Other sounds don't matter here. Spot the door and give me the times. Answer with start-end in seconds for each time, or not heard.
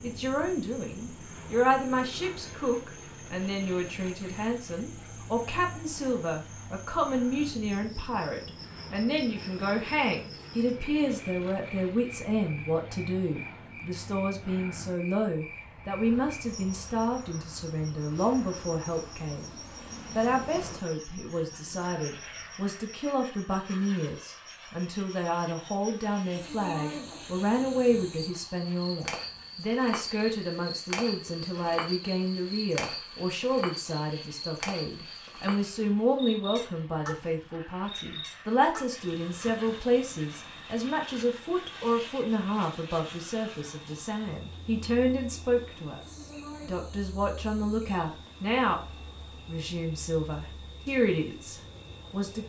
not heard.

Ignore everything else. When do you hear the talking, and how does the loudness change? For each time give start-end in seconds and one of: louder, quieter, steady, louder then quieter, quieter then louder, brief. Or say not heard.
0.0-19.5 steady
20.1-48.8 steady
49.5-52.4 brief.